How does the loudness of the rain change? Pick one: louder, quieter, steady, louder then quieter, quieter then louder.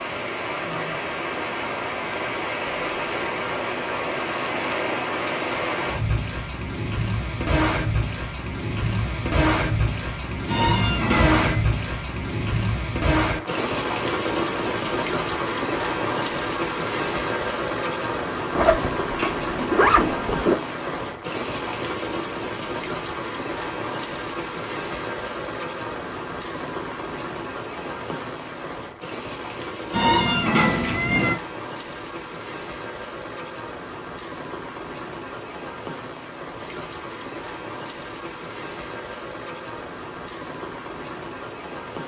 quieter.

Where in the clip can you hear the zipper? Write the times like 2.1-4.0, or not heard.
18.6-20.6.